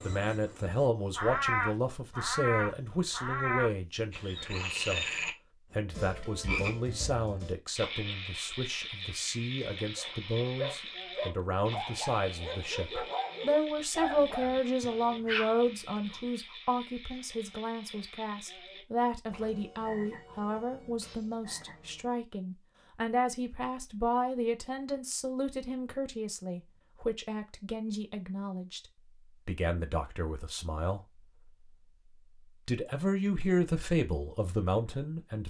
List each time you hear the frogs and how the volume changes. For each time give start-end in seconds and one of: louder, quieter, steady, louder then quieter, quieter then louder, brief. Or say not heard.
0.0-22.1 quieter.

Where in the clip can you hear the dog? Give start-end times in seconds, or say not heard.
9.9-16.2.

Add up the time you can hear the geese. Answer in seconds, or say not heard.
not heard.